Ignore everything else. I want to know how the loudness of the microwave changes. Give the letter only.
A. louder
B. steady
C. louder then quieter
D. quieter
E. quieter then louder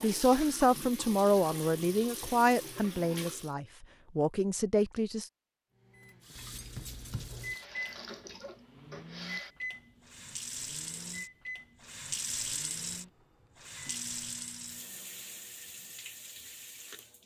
D.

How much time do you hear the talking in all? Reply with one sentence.
You can hear the talking for 5 seconds altogether.